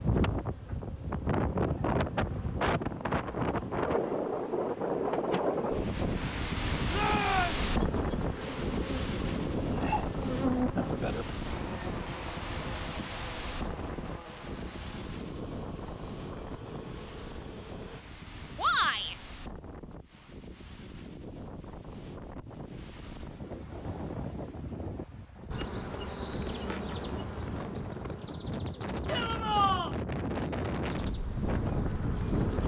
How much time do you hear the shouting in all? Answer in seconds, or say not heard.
2 s.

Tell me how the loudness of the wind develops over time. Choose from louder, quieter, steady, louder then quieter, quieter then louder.
quieter then louder.